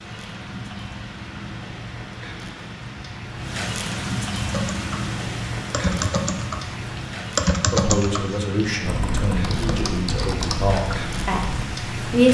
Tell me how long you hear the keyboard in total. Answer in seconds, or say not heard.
7 s.